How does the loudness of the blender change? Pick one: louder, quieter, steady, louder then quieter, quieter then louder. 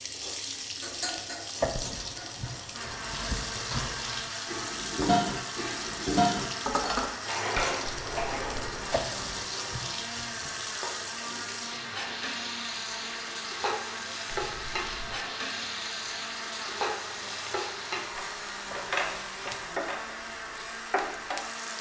steady.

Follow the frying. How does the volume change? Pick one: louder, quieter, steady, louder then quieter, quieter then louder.
steady.